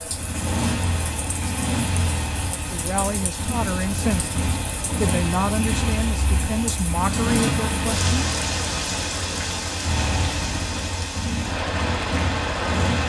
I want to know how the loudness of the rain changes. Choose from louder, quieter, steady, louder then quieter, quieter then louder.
louder.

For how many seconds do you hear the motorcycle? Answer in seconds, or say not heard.
13 s.